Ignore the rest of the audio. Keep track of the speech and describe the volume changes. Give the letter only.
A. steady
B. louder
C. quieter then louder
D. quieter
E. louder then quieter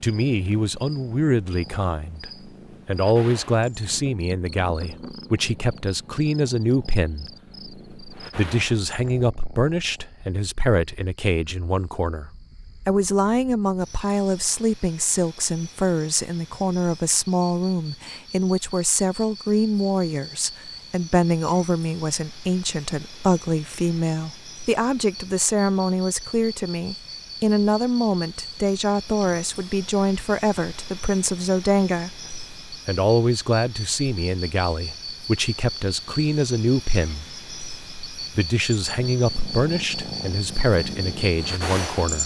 A.